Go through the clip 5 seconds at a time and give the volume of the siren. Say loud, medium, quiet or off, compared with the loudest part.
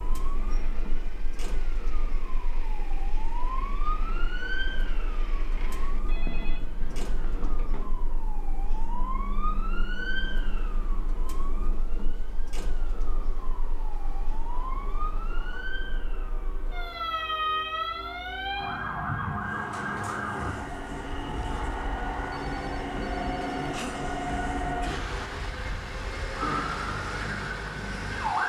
medium, medium, medium, loud, medium, loud.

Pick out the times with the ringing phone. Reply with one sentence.
The ringing phone can be heard from 6.0 to 8.0 s and from 22.3 to 23.6 s.